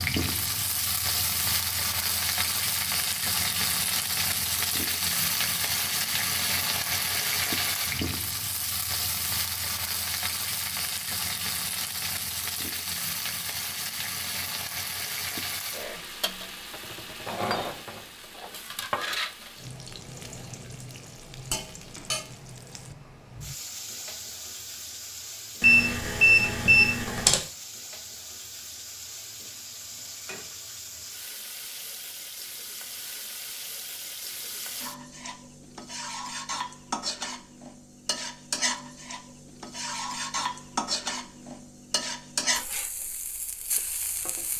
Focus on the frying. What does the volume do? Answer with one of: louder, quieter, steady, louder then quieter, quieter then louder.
quieter then louder.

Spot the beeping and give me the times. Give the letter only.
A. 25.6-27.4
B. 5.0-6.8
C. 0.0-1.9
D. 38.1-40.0
A.